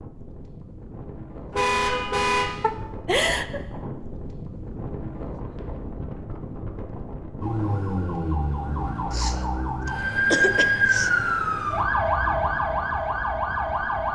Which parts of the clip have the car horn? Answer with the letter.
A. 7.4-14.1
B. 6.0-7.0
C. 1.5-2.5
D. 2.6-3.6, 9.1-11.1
C.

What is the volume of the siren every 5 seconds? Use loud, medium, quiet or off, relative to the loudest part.
off, medium, loud.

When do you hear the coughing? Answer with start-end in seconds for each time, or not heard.
2.6-3.6, 9.1-11.1.